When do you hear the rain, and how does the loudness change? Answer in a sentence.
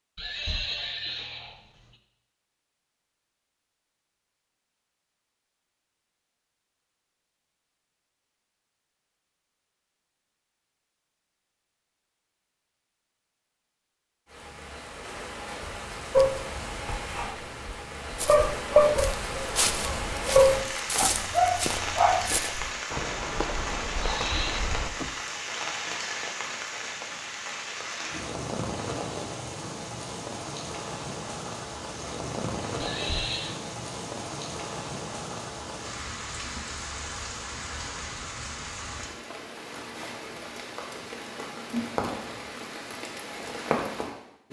The rain can be heard from 14.2 to 44.4 s, at a steady volume.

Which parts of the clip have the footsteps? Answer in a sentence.
The footsteps can be heard from 18.1 to 25.1 s.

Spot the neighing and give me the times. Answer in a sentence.
You can hear the neighing from 0.1 to 1.6 s, from 24.0 to 24.6 s and from 32.8 to 33.6 s.